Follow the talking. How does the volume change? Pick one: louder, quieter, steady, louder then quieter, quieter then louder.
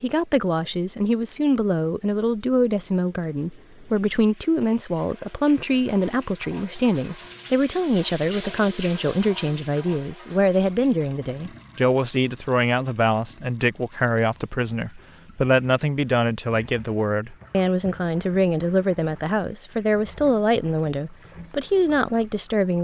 steady.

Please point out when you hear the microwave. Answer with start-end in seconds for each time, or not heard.
not heard.